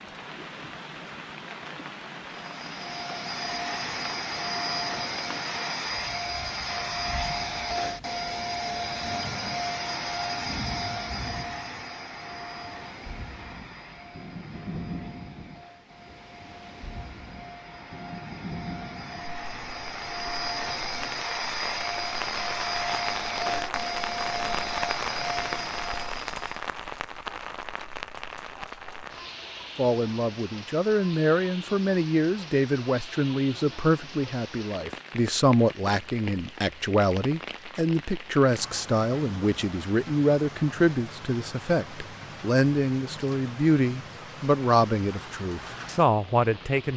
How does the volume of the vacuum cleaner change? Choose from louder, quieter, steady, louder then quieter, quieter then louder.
quieter then louder.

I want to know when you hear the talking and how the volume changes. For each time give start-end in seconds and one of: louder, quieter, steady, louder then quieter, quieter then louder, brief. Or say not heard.
29.8-46.9 steady.